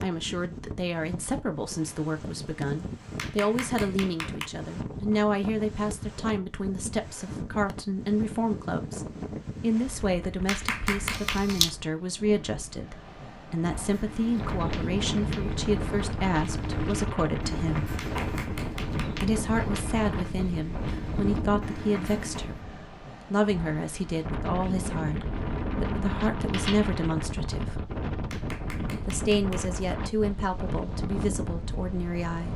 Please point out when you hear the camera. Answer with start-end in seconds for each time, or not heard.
11.1-11.7, 25.2-26.9.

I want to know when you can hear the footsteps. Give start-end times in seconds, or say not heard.
13.8-22.6.